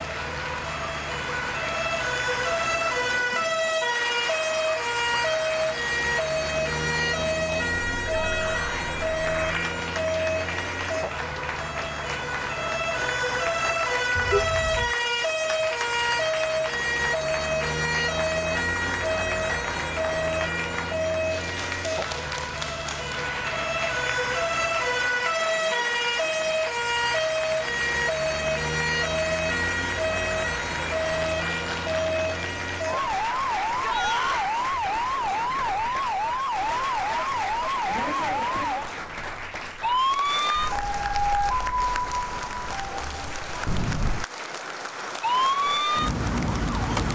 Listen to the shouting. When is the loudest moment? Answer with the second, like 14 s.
34 s.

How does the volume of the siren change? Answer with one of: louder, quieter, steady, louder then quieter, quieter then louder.
steady.